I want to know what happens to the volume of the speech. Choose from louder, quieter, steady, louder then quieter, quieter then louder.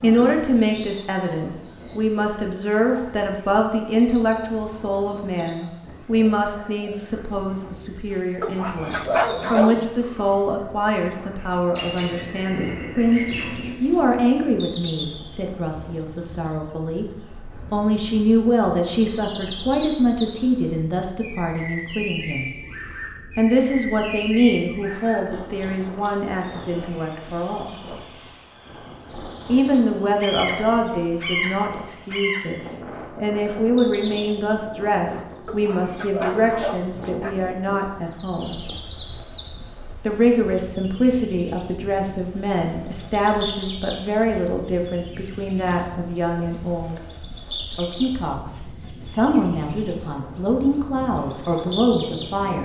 steady.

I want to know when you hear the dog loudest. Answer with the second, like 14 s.
9 s.